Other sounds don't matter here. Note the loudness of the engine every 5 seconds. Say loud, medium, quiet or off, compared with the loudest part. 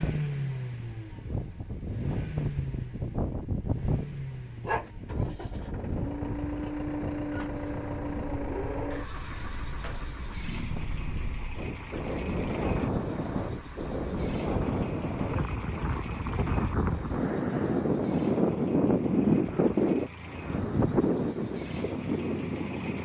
loud, loud, medium, medium, medium.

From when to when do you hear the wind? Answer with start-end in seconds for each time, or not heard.
0.0-23.0.